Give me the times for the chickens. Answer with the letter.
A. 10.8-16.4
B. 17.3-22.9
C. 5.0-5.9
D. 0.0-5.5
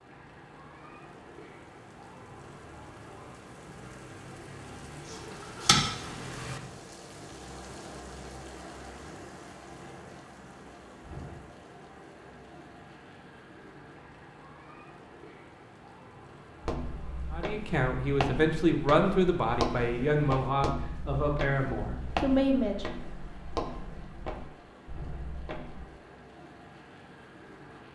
C.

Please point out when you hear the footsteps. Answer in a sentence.
You can hear the footsteps from 16.6 to 25.9 s.